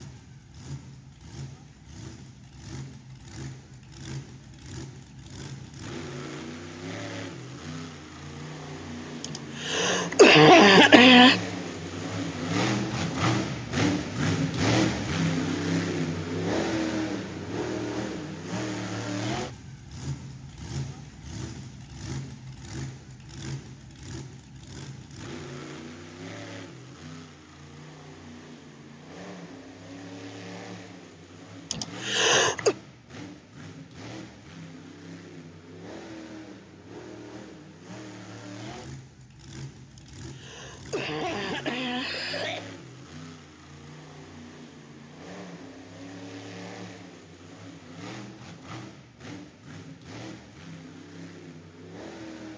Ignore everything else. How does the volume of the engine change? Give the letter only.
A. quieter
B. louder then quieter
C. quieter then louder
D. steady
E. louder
B.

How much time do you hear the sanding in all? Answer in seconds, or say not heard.
not heard.